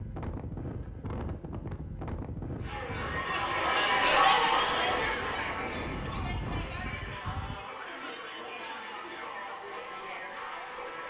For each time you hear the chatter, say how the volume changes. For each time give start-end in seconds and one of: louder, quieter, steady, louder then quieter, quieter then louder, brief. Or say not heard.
2.5-11.0 quieter.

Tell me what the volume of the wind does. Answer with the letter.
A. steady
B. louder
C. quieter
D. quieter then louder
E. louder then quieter
D.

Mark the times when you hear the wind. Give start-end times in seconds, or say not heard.
0.0-7.5.